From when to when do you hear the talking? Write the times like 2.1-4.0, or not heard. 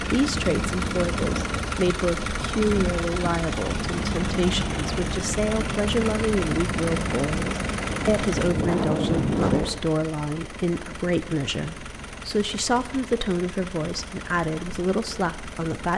0.0-15.9.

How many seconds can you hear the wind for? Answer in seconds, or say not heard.
10 s.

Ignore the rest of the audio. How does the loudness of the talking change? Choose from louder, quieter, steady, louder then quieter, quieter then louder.
steady.